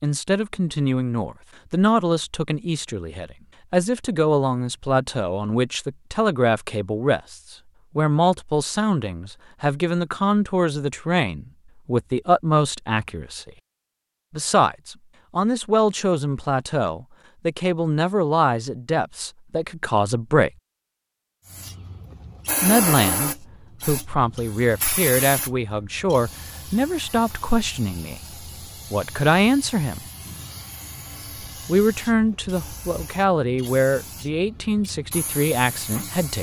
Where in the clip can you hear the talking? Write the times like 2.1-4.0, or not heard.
0.0-13.5, 14.3-20.5, 22.6-28.2, 28.9-30.0, 31.6-36.3.